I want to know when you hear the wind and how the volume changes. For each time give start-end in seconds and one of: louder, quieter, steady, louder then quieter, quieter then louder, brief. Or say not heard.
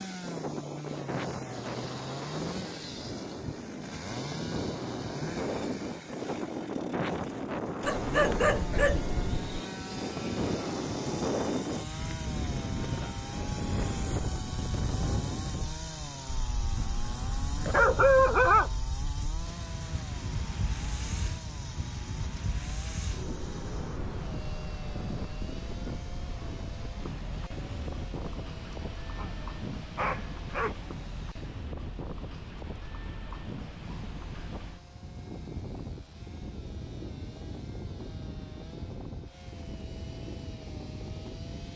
0.0-41.7 quieter.